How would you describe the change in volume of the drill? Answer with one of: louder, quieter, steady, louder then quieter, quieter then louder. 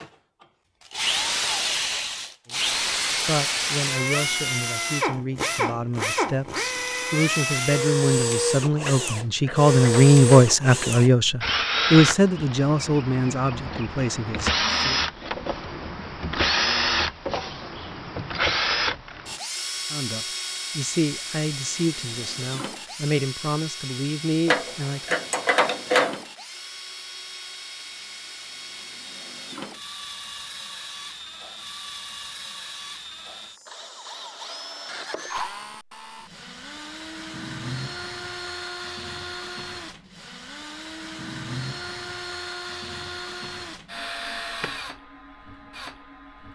quieter.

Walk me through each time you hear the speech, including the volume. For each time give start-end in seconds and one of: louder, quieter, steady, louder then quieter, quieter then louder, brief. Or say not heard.
2.5-15.0 louder then quieter
19.9-25.2 quieter then louder.